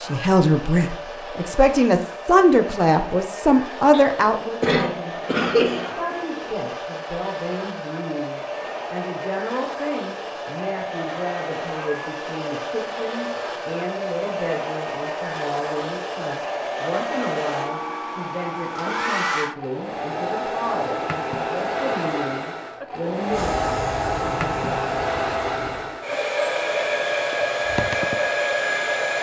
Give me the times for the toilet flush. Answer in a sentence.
The toilet flush can't be heard in this clip.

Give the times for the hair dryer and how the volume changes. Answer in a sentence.
The hair dryer can be heard from 0.0 to 29.1 s, getting louder.